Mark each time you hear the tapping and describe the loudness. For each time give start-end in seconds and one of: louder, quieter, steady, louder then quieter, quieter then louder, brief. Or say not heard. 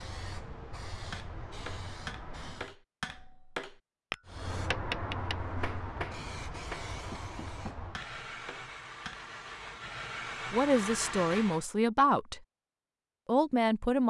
1.1-9.2 louder then quieter.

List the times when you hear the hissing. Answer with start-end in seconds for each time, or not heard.
0.0-2.8, 4.2-11.7.